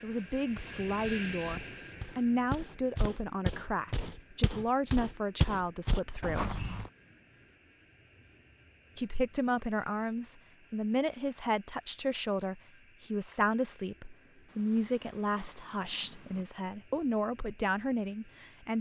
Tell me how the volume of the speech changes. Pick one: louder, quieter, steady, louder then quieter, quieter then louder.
steady.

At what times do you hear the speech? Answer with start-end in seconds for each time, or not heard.
0.0-6.5, 8.9-18.7.